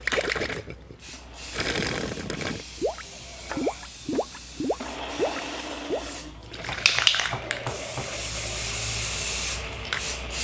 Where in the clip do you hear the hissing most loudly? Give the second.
7 s.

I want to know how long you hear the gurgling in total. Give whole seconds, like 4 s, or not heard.
7 s.